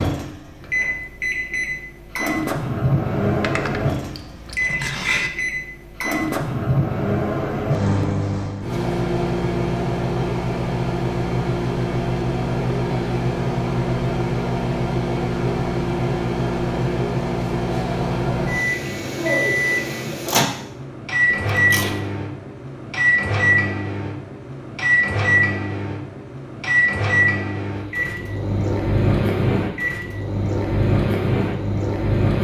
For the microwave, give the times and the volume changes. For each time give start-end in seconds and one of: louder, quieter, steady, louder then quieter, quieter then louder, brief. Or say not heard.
0.0-32.3 steady.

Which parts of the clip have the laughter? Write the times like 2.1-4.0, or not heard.
not heard.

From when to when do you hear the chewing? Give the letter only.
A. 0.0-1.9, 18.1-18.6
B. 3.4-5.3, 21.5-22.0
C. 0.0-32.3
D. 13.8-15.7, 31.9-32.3
B.